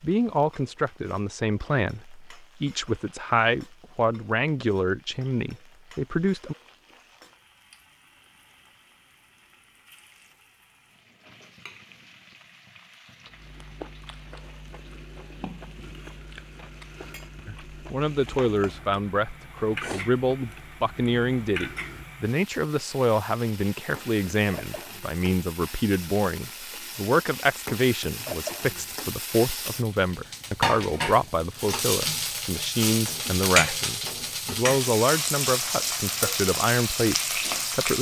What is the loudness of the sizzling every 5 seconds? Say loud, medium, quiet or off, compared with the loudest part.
quiet, quiet, quiet, quiet, quiet, medium, loud, loud.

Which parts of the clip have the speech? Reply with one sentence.
The speech can be heard from 0.0 to 6.5 s and from 17.4 to 37.9 s.